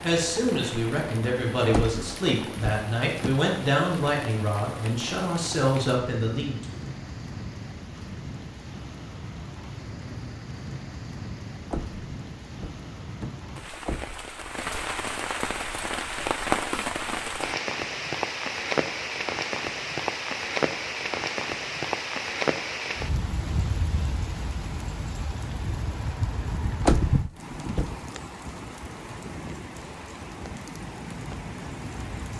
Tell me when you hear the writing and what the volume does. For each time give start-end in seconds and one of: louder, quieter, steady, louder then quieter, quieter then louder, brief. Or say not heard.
not heard.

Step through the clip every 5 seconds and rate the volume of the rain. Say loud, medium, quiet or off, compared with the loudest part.
medium, medium, medium, loud, loud, medium, medium.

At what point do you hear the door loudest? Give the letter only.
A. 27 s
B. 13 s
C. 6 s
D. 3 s
A.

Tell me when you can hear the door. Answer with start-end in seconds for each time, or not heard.
1.7-3.4, 11.7-14.2, 26.8-27.9.